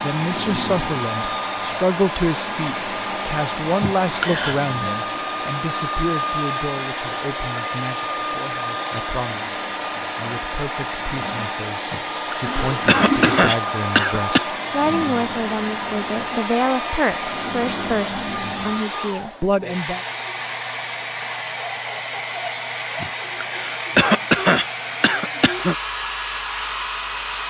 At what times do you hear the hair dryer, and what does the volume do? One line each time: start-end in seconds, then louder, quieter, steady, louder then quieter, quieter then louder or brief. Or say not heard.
0.0-27.4 steady.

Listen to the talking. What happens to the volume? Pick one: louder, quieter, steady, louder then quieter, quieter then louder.
quieter then louder.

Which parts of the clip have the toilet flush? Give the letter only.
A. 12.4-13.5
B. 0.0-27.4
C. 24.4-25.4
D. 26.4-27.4
A.